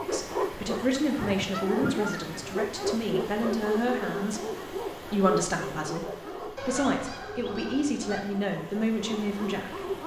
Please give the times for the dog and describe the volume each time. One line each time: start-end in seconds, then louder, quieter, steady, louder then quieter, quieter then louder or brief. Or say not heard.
0.0-10.0 quieter.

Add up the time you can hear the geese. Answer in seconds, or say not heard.
3 s.